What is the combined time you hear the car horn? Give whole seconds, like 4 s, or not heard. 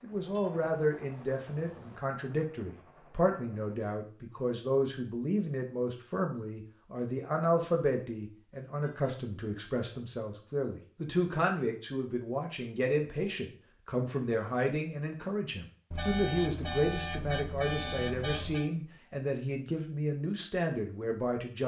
5 s.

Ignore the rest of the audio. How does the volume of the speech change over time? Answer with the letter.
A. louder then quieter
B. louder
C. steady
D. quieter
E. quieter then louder
C.